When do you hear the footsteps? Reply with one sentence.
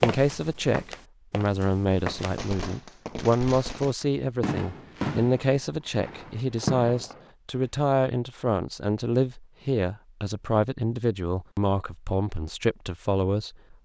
The footsteps can be heard from 0.0 to 2.4 s.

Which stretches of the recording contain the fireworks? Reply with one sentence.
The fireworks can be heard from 2.1 to 7.3 s.